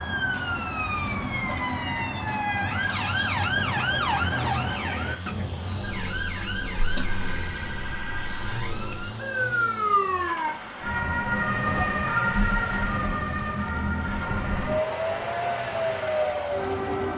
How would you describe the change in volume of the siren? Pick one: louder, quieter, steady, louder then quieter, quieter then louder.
steady.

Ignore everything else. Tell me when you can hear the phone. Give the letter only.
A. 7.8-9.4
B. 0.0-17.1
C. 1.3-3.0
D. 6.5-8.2
C.